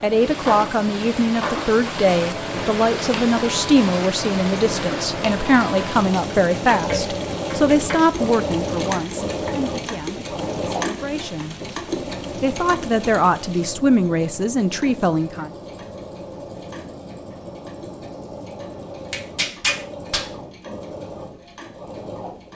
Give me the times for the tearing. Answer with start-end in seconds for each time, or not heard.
19.1-20.2.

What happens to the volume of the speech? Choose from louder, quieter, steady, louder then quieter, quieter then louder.
quieter then louder.